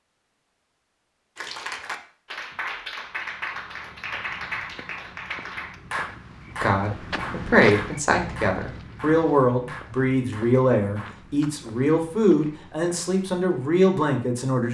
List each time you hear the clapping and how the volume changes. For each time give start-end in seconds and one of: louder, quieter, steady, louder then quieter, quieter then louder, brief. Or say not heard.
1.4-11.5 quieter.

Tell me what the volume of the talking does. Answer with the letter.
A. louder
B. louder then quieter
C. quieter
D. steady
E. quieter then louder
D.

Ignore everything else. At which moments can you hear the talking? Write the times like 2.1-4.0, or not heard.
6.6-14.6.